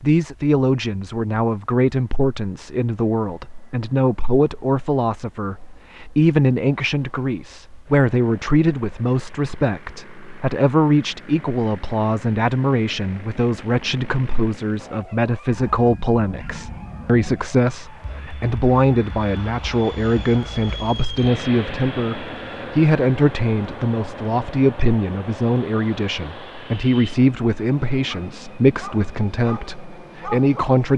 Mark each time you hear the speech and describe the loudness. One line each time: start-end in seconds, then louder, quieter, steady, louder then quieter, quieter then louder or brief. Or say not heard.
0.0-30.9 steady.